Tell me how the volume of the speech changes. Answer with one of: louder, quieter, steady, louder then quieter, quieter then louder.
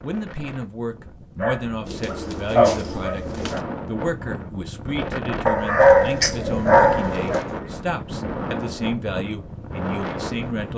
steady.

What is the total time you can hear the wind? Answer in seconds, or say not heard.
11 s.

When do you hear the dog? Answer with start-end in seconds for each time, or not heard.
1.4-3.6, 5.5-7.4.